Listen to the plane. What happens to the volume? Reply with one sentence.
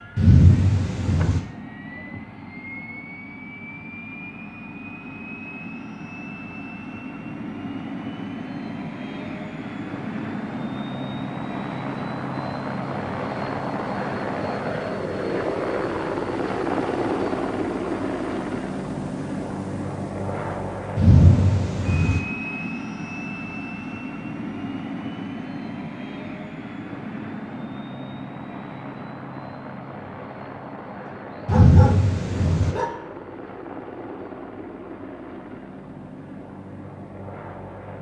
The loudness of the plane goes up, then down.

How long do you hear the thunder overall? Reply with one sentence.
You can hear the thunder for 4 seconds altogether.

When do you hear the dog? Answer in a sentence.
The dog can be heard from 31.1 to 33.0 s.